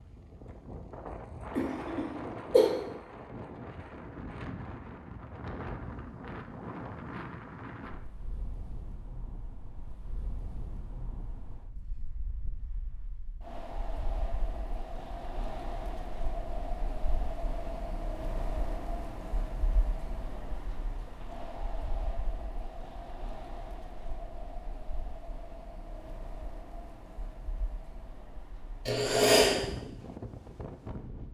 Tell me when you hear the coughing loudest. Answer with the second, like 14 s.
29 s.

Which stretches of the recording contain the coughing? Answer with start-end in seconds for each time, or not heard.
1.6-2.7, 28.9-29.6.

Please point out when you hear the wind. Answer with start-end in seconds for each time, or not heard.
0.0-31.2.